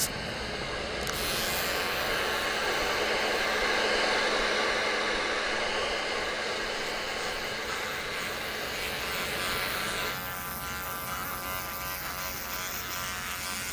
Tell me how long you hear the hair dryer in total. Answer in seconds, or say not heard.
10 s.